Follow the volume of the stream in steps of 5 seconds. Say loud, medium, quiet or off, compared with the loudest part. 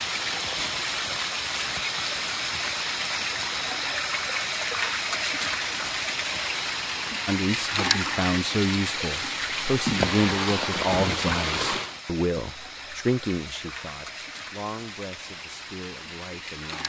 loud, loud, loud, medium.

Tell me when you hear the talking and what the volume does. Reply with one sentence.
You can hear the talking from 7.2 to 16.8 s, getting quieter.